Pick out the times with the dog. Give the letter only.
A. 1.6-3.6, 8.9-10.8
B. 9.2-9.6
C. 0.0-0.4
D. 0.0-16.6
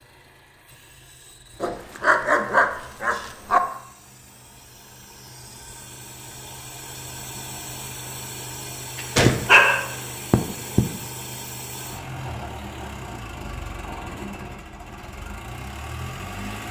A.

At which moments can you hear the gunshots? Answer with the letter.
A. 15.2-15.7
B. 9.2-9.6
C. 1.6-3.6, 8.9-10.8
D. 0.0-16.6
B.